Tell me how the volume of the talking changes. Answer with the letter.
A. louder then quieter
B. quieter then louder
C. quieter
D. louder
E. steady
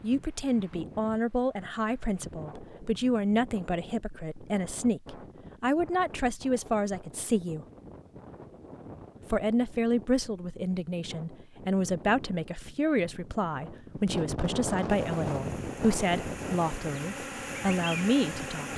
E.